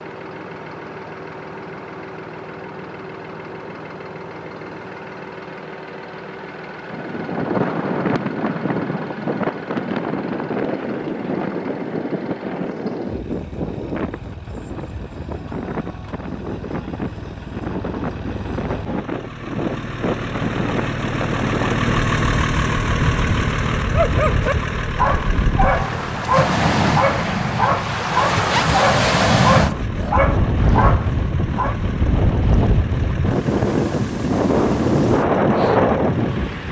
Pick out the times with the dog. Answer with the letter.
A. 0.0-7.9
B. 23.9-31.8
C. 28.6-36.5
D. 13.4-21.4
B.